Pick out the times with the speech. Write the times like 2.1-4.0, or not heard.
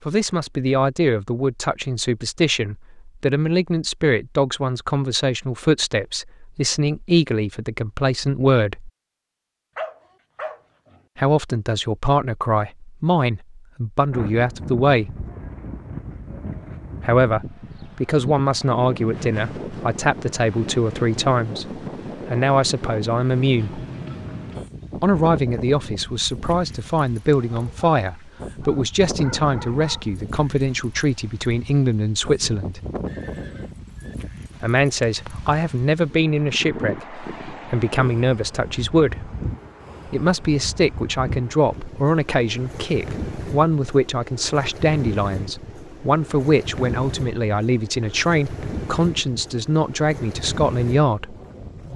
0.1-8.9, 11.2-15.2, 17.0-23.8, 25.0-32.8, 34.6-39.3, 40.0-51.4.